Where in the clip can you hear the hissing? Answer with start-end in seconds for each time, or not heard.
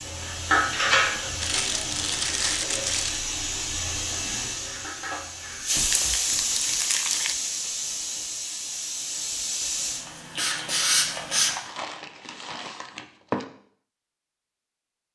0.0-11.5.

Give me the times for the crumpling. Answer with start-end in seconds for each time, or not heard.
1.4-3.2, 5.8-7.3, 11.4-13.4.